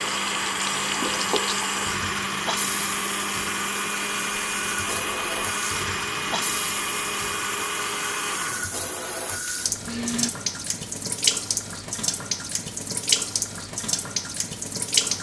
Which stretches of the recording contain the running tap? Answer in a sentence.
The running tap can be heard from 0.0 to 15.1 s.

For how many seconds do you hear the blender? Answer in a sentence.
You can hear the blender for 10 seconds altogether.